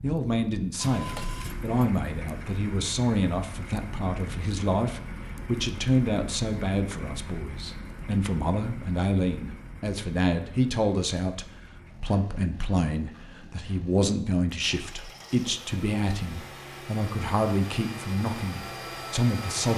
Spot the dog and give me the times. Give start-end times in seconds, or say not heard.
not heard.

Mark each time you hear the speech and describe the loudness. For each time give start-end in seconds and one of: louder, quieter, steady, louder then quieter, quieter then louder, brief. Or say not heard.
0.0-19.7 steady.